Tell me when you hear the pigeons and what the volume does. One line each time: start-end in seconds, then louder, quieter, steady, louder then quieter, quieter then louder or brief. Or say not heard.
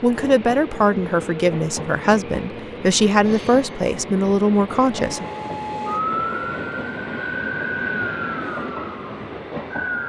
not heard.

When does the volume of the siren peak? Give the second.
6 s.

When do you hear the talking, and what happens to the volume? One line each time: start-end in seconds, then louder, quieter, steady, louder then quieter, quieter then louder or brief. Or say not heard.
0.0-5.2 steady.